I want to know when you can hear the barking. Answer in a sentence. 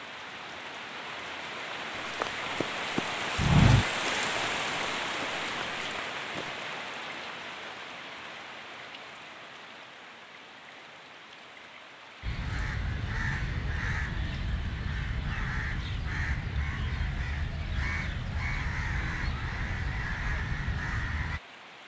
You can't hear the barking here.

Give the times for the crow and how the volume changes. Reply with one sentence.
You can hear the crow from 12.2 to 21.4 s, at a steady volume.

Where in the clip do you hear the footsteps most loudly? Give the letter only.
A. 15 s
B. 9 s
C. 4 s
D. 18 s
C.